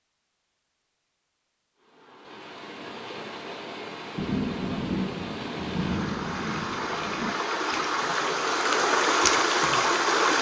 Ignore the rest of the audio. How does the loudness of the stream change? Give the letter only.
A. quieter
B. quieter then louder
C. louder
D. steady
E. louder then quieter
C.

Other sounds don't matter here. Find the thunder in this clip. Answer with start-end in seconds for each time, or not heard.
4.2-7.3.